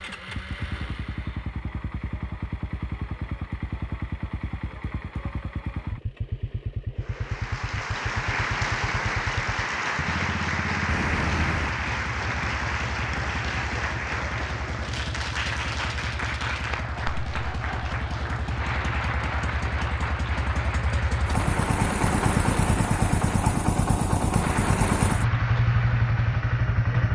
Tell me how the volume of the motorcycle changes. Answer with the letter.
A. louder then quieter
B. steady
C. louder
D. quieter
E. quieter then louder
C.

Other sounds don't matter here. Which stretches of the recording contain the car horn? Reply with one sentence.
The car horn can be heard from 10.8 to 11.8 s.